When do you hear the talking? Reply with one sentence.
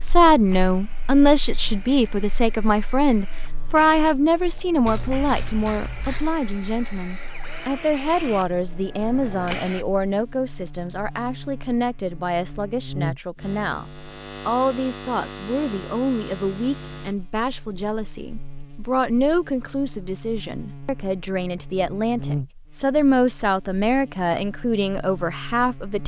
The talking can be heard from 0.0 to 13.8 s and from 14.4 to 26.0 s.